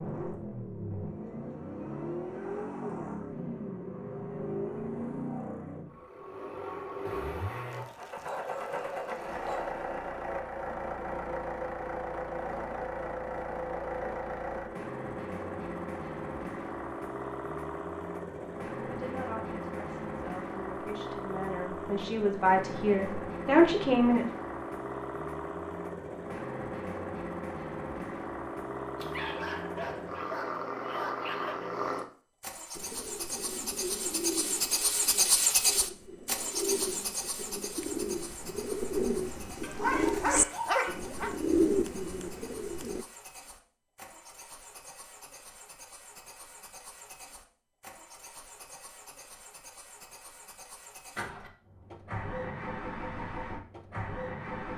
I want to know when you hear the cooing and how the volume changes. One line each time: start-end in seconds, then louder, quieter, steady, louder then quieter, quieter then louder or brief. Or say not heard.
32.8-43.0 louder.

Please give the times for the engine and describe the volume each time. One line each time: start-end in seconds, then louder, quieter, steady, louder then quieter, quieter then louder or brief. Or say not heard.
0.0-54.7 quieter.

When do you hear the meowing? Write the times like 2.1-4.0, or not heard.
not heard.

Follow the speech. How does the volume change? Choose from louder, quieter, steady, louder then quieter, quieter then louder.
louder.